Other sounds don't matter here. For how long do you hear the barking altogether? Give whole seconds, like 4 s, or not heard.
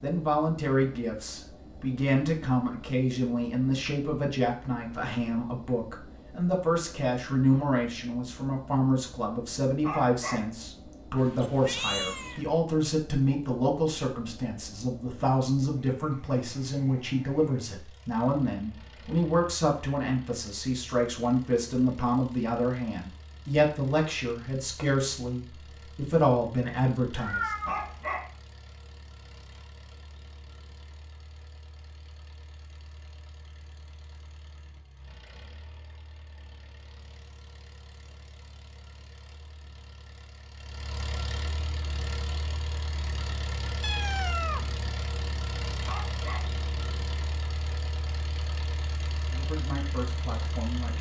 2 s.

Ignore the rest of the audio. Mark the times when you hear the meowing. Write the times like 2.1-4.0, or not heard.
11.2-12.4, 27.1-28.1, 43.8-45.0.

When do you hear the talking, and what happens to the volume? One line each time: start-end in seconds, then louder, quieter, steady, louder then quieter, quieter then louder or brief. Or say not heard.
0.0-27.5 steady
49.3-50.9 brief.